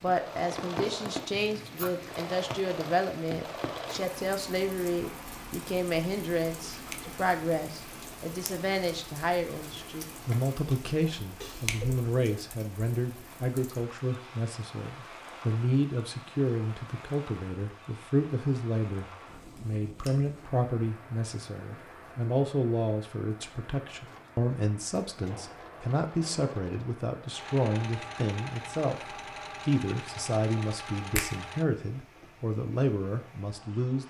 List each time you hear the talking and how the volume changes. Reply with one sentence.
You can hear the talking from 0.0 to 34.0 s, at a steady volume.